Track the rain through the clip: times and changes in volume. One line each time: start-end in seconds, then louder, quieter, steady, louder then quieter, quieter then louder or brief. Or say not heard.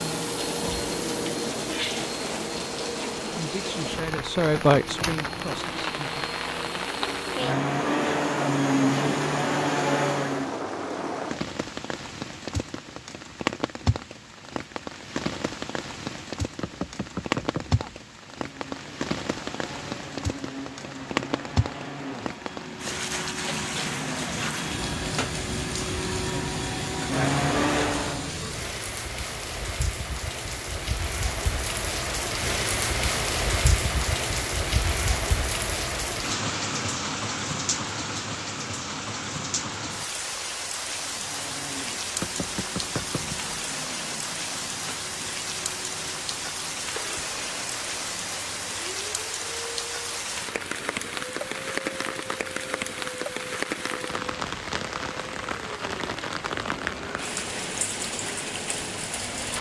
0.0-59.5 steady.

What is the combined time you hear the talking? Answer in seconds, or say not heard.
3 s.